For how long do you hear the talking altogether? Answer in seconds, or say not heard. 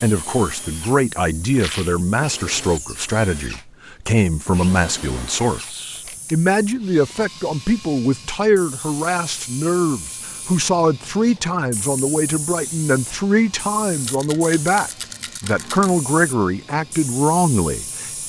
18 s.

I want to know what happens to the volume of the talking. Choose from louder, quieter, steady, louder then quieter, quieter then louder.
steady.